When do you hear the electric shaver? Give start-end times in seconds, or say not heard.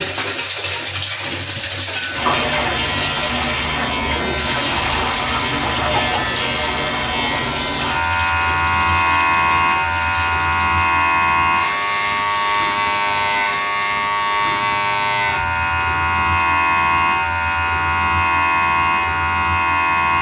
2.1-20.1.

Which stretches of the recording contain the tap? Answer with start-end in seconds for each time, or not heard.
0.0-20.1.